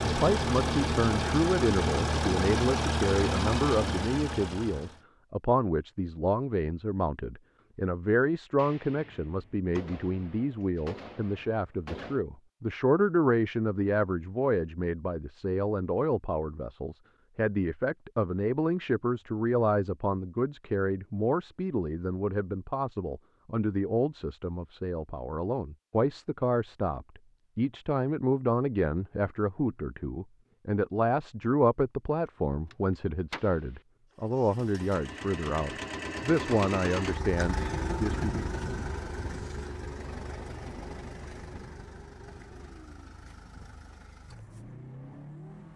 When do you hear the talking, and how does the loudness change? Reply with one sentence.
You can hear the talking from 0.0 to 38.5 s, at a steady volume.